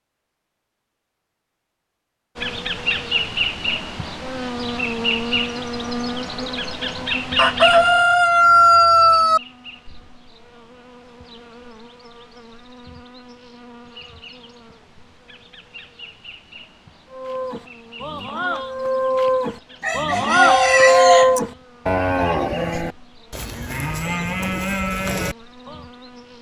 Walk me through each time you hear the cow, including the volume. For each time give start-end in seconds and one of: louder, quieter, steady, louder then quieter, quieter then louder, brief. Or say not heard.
17.1-25.9 louder then quieter.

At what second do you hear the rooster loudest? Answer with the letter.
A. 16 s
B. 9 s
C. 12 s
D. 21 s
B.